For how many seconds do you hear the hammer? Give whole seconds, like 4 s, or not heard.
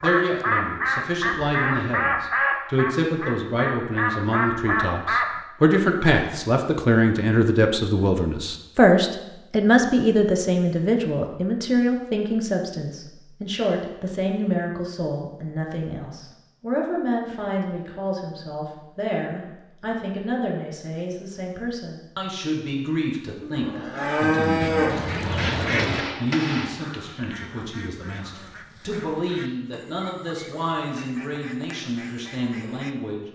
2 s.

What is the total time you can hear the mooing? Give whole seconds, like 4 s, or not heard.
3 s.